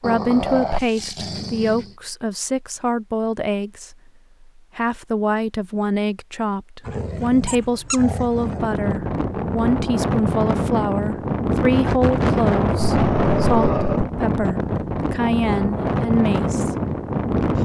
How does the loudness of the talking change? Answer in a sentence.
The volume of the talking stays about the same.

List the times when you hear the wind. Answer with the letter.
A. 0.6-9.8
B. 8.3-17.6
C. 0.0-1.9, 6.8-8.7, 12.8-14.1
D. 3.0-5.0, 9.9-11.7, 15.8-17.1
B.